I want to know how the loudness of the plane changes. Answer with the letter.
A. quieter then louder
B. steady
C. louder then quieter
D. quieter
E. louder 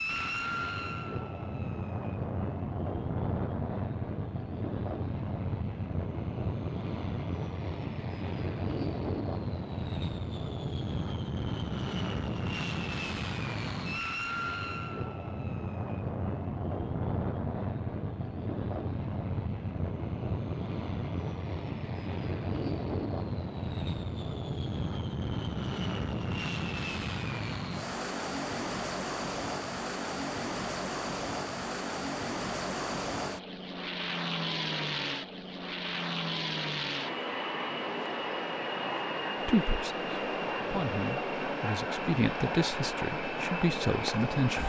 B.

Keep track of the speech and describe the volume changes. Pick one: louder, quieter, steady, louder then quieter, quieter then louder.
louder.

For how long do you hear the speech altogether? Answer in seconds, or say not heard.
5 s.